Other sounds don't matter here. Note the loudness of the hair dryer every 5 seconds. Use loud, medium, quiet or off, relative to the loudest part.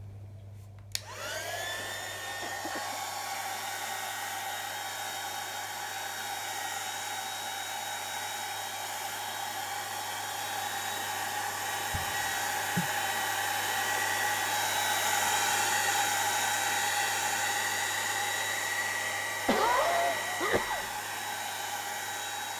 medium, medium, loud, loud, medium.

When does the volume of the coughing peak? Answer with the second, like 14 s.
20 s.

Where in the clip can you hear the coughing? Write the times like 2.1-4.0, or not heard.
2.4-3.0, 11.9-12.9, 19.4-20.9.